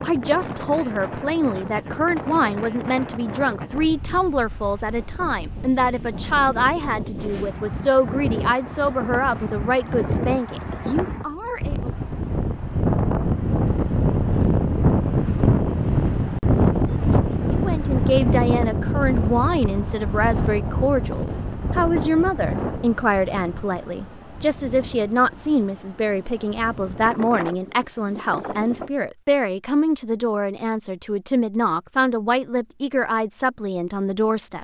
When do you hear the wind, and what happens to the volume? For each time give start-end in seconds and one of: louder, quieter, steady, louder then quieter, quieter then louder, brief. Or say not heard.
0.0-28.9 louder then quieter.